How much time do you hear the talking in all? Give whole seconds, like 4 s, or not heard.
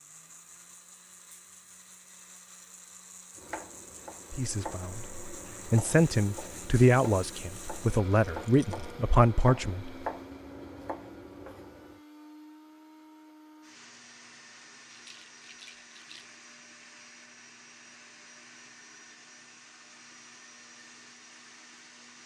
6 s.